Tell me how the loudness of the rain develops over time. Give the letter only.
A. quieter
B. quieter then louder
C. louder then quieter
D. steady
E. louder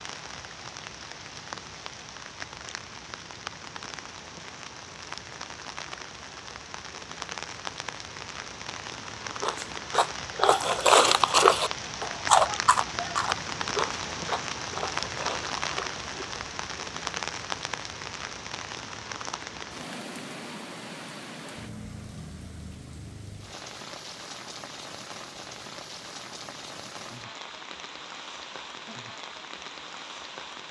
C.